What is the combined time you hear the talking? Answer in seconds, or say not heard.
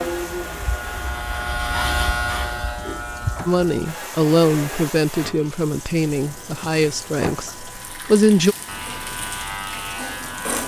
5 s.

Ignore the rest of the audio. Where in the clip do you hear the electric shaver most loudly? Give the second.
2 s.